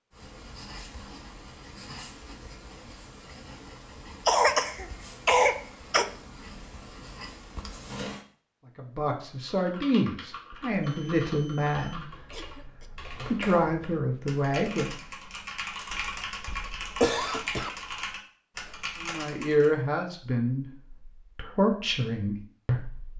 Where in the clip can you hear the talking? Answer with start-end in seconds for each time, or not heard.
8.8-15.0, 19.0-23.1.